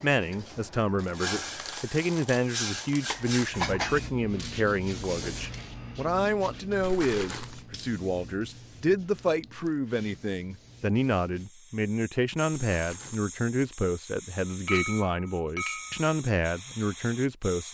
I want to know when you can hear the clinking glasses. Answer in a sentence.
You can hear the clinking glasses from 3.0 to 4.0 s, from 9.2 to 9.7 s and from 14.7 to 16.1 s.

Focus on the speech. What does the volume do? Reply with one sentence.
The volume of the speech stays about the same.